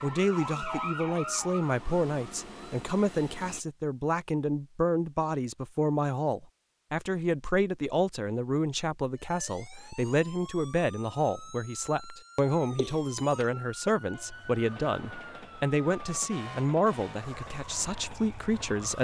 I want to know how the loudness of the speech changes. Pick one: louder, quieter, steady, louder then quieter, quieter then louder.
steady.